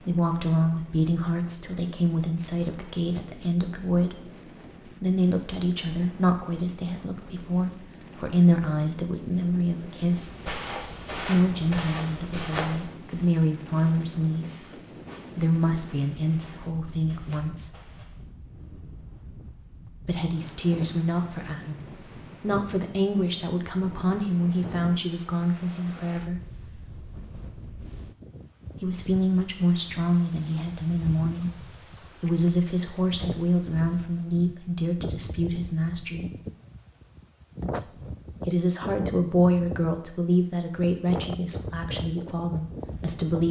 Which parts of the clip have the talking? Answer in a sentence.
You can hear the talking from 0.0 to 10.3 s, from 11.2 to 17.8 s, from 20.1 to 26.4 s, from 28.8 to 36.3 s and from 37.6 to 43.4 s.